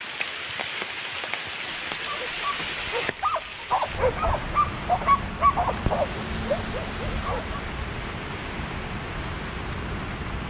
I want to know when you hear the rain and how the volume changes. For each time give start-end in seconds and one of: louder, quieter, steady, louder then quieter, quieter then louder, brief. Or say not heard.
0.0-10.4 steady.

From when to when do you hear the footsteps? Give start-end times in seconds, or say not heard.
not heard.